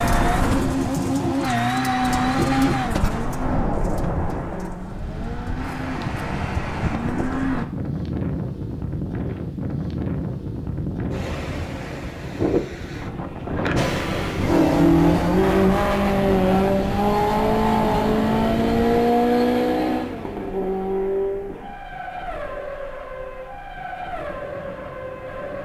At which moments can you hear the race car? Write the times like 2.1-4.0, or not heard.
0.0-7.7, 13.8-25.6.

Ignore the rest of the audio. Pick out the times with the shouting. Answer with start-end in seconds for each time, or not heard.
not heard.